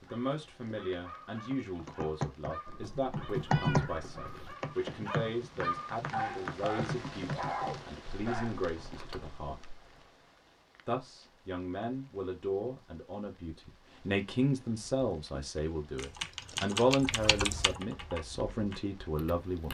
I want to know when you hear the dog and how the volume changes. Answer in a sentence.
The dog can be heard from 0.0 to 9.3 s, getting louder.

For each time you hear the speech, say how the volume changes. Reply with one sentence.
The speech can be heard from 0.0 to 9.7 s, at a steady volume; and from 10.8 to 19.7 s, getting louder then quieter.